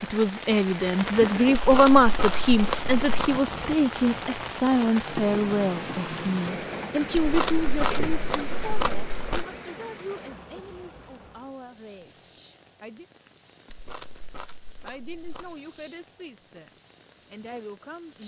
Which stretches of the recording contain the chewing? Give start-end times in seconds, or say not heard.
1.5-3.4, 7.1-9.4, 13.7-15.6.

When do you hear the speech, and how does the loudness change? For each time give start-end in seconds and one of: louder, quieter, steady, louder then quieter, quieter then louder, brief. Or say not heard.
0.0-13.1 quieter
14.8-16.7 brief
17.3-18.2 brief.